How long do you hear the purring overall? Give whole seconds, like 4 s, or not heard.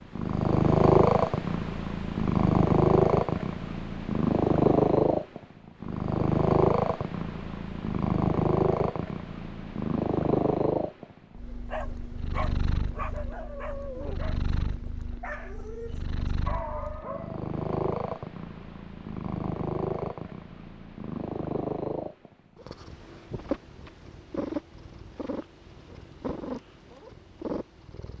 28 s.